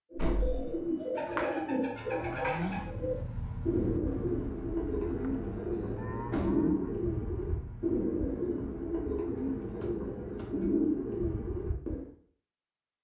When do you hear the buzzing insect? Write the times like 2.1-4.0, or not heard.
not heard.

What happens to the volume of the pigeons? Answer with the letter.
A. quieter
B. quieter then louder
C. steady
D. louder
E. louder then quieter
C.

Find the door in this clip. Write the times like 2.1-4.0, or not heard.
0.1-0.7, 5.7-6.8, 9.8-10.5.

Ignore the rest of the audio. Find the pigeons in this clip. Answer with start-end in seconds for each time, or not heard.
0.1-12.1.